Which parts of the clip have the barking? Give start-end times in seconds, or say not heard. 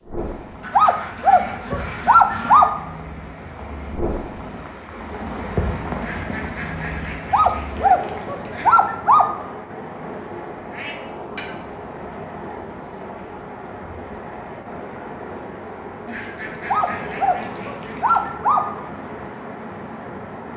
0.7-2.7, 7.3-9.3, 16.6-18.6.